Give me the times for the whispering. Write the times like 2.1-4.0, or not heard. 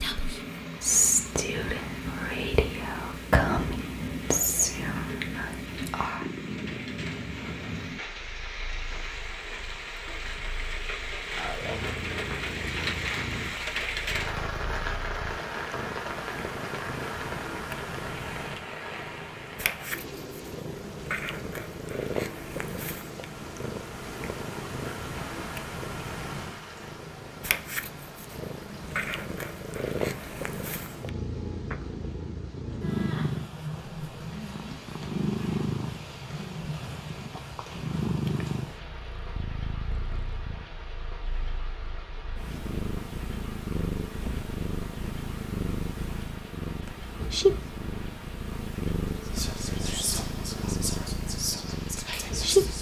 0.0-6.2, 49.2-52.7.